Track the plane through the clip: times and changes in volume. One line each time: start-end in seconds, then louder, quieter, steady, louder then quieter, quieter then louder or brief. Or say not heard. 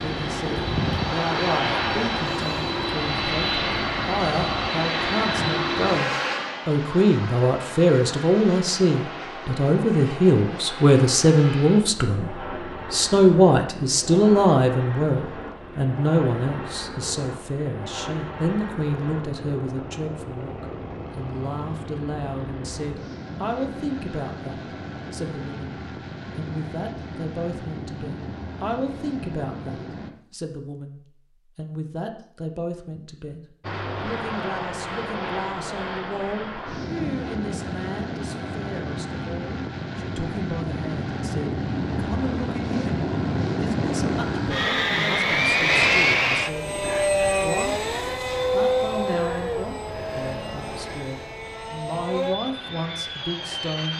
0.0-30.1 quieter
33.6-53.9 louder then quieter.